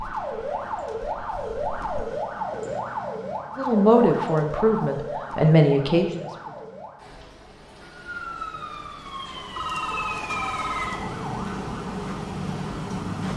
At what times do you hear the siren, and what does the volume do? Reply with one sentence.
The siren can be heard from 0.0 to 13.3 s, getting quieter then louder.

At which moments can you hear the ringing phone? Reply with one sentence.
You can hear the ringing phone from 9.6 to 11.1 s.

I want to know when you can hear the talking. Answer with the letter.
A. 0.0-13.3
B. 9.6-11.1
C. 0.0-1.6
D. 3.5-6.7
D.